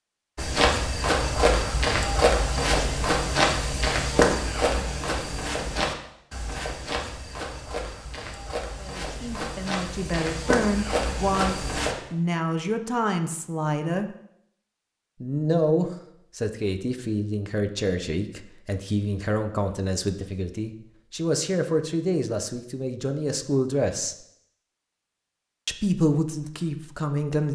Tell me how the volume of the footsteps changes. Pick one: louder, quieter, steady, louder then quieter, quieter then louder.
quieter then louder.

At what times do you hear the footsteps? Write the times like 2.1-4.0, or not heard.
0.3-11.9.